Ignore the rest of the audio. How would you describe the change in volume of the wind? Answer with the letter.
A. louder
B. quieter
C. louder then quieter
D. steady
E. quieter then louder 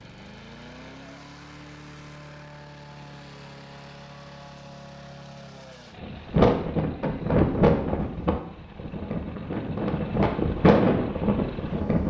E.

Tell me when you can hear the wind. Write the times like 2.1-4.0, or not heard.
6.0-12.0.